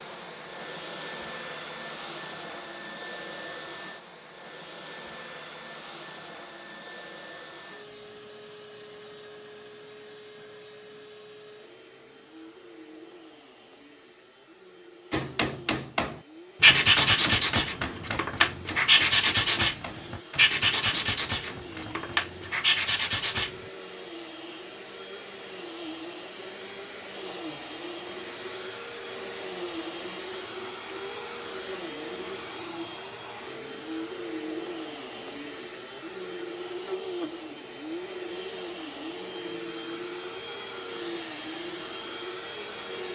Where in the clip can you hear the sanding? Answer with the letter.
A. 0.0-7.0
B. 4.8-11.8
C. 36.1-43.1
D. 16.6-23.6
D.